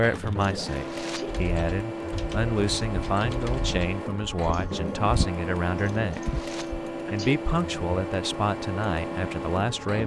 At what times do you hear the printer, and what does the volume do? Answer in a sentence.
You can hear the printer from 0.0 to 10.0 s, at a steady volume.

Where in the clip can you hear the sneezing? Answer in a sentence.
The sneezing can be heard from 1.0 to 1.4 s and from 7.0 to 7.5 s.